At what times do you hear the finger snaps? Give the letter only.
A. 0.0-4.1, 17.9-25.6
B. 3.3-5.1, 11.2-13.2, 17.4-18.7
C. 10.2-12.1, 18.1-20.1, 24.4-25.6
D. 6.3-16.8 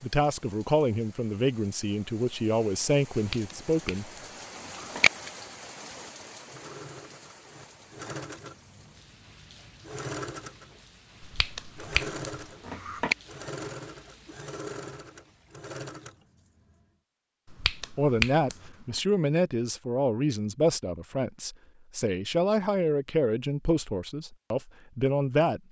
B.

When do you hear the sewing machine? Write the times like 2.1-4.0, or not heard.
6.3-16.8.